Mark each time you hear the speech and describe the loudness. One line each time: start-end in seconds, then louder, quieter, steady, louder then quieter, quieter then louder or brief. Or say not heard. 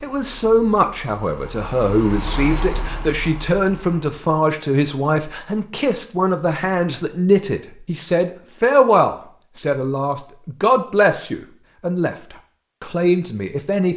0.0-13.9 steady.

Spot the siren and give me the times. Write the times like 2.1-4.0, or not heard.
not heard.